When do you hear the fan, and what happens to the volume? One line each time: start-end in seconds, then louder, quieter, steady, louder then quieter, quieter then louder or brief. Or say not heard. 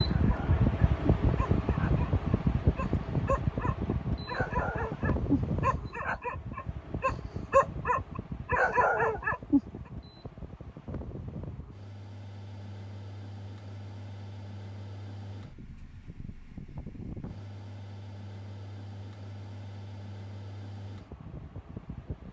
0.0-22.2 quieter.